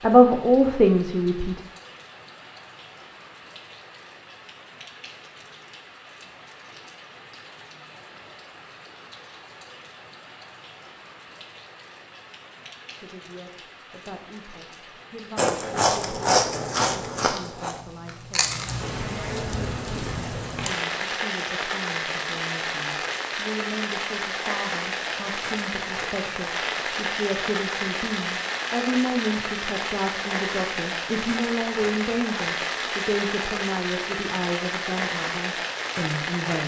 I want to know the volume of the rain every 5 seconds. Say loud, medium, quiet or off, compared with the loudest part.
quiet, quiet, quiet, medium, loud, loud, loud, loud.